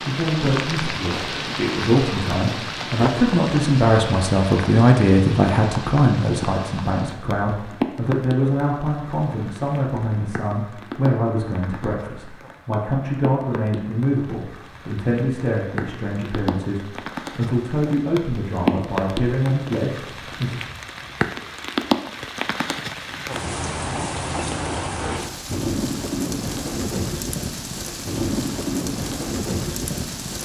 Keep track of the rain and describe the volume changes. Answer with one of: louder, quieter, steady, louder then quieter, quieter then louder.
quieter then louder.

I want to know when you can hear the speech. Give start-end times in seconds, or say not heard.
0.0-20.6.